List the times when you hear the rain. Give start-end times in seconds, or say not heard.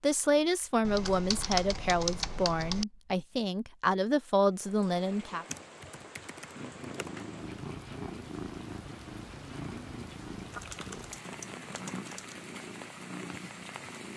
4.5-14.1.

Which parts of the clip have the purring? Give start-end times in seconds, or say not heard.
6.5-14.1.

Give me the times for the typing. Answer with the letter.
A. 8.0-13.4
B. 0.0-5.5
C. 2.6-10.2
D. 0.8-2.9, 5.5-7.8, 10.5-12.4
D.